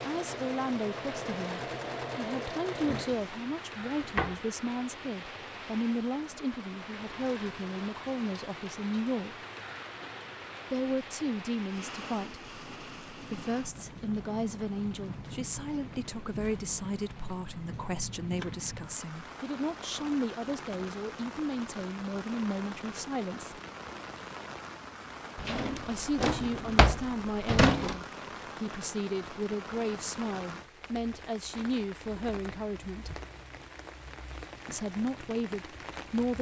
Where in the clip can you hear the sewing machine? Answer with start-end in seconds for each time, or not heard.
0.0-3.2.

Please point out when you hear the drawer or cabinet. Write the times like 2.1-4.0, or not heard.
2.8-4.5, 25.4-27.9.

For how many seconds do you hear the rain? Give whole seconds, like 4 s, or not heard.
36 s.